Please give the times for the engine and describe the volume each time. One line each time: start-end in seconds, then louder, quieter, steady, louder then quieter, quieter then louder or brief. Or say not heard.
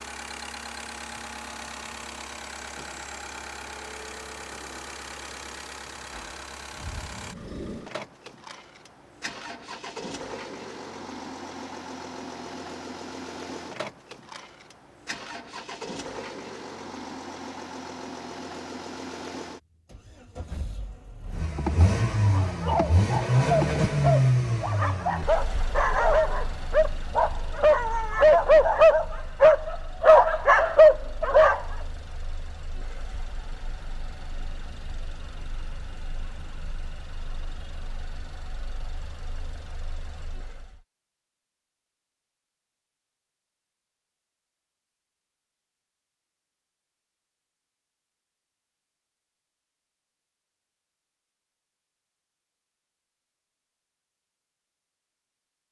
0.0-40.9 louder then quieter.